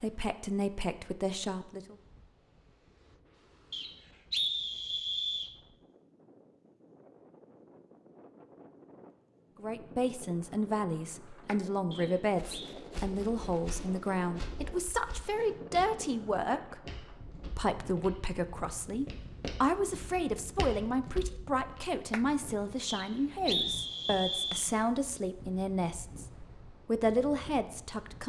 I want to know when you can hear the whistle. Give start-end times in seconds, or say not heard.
3.7-5.5, 11.9-12.8, 22.9-24.6.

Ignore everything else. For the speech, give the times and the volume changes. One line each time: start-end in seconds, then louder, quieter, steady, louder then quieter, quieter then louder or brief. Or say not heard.
0.0-1.9 brief
9.6-26.2 steady
26.9-28.2 brief.